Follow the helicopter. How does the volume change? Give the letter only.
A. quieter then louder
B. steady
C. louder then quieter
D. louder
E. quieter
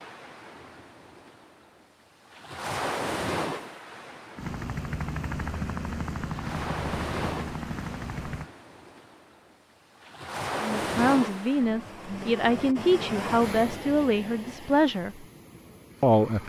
B.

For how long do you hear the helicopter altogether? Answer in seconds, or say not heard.
4 s.